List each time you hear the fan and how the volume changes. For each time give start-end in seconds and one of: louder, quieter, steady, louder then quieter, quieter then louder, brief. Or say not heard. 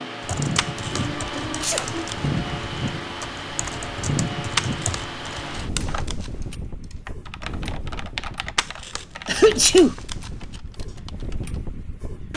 0.0-12.3 quieter.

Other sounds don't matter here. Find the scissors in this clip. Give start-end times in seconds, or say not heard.
0.6-2.3, 4.5-6.5, 8.6-10.6.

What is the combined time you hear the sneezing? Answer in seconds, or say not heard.
2 s.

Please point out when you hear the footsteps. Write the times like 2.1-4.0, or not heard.
not heard.